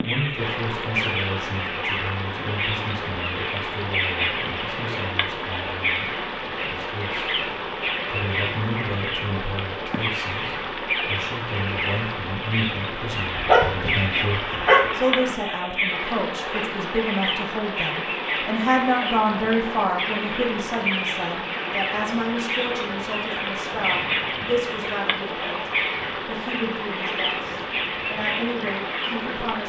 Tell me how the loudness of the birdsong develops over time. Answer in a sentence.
The loudness of the birdsong stays about the same.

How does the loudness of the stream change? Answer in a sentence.
The loudness of the stream stays about the same.